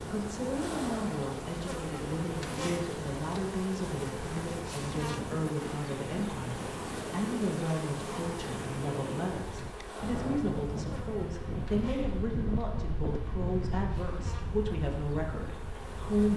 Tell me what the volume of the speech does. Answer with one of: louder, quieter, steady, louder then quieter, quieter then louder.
steady.